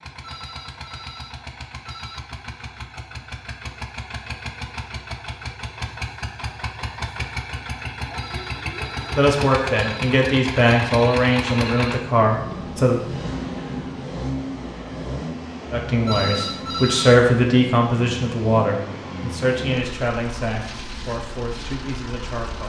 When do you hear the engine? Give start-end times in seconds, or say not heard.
0.0-22.6.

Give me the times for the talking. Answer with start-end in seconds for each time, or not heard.
9.2-13.0, 15.7-22.6.